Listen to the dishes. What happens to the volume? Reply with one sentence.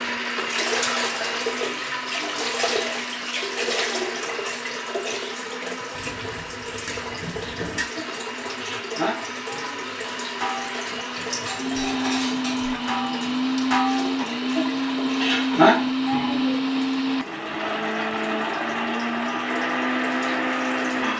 The volume of the dishes goes up.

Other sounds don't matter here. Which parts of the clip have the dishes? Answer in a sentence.
The dishes can be heard from 6.0 to 16.6 s.